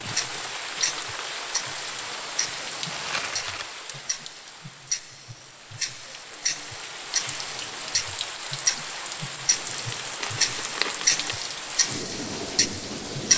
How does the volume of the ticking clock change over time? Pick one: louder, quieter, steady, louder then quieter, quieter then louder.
louder.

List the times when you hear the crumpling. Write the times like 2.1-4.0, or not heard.
2.9-3.7, 9.5-11.4.